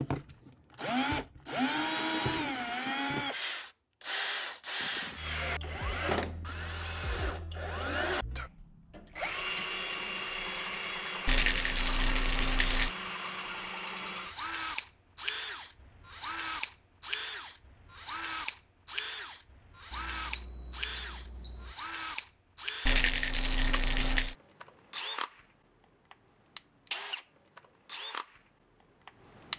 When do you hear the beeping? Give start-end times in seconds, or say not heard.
19.9-21.8.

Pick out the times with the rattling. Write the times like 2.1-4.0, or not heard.
11.2-12.9, 22.9-24.4.